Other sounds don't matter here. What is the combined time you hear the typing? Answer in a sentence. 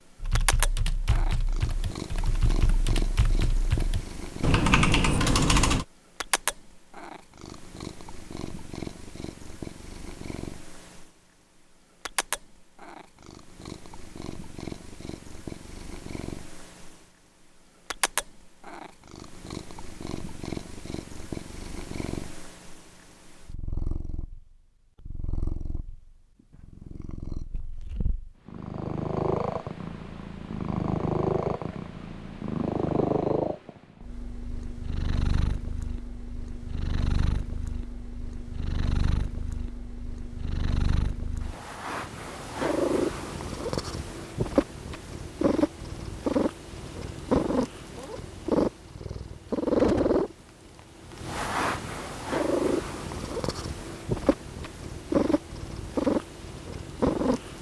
You can hear the typing for 6 seconds altogether.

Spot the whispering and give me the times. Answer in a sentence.
The whispering can't be heard in this clip.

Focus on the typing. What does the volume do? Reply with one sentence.
The volume of the typing goes up.